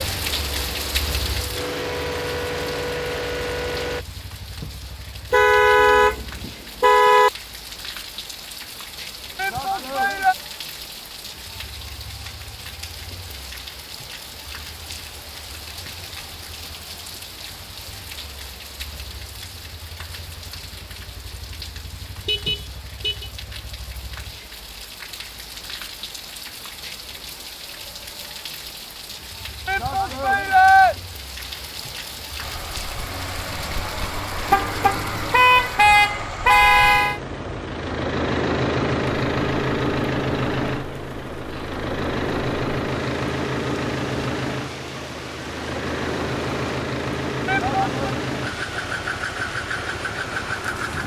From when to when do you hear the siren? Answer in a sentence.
You can't hear the siren here.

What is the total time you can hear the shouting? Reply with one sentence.
The shouting can be heard for 3 seconds in total.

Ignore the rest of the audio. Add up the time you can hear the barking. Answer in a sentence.
You can't hear the barking here.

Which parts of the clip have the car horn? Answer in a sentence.
You can hear the car horn from 5.3 to 7.3 s, from 22.1 to 23.3 s and from 34.5 to 37.2 s.